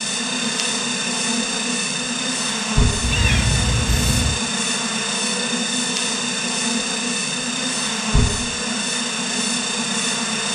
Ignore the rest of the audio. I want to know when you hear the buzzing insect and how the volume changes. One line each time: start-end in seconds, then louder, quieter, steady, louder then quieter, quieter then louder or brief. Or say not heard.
0.0-10.4 steady.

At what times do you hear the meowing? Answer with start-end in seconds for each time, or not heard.
3.0-4.4.